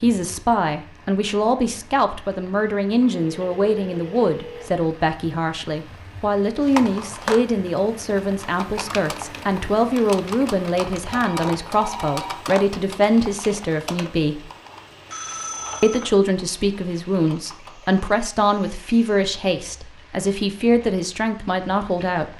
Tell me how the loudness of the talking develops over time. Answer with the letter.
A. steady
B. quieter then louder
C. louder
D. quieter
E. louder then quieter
A.